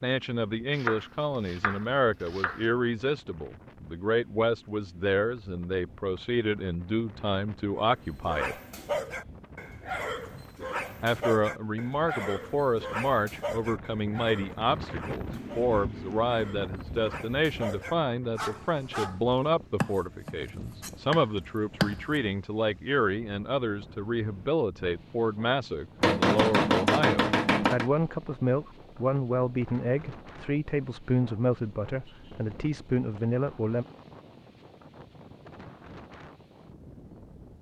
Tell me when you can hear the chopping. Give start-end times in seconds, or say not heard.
0.8-2.6, 19.8-22.2, 26.0-27.9.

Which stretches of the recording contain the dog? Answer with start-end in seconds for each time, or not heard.
7.8-19.2.